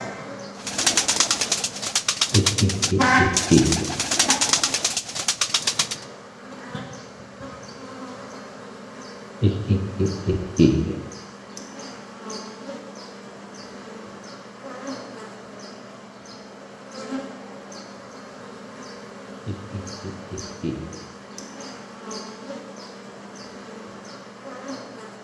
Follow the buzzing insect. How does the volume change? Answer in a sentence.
The volume of the buzzing insect goes down.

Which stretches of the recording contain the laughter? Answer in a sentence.
The laughter can be heard from 2.3 to 3.9 s, from 9.4 to 10.9 s and from 19.4 to 20.9 s.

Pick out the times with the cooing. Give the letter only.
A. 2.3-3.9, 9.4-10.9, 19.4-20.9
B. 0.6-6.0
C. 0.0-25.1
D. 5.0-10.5
B.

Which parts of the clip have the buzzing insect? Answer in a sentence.
The buzzing insect can be heard from 0.0 to 25.1 s.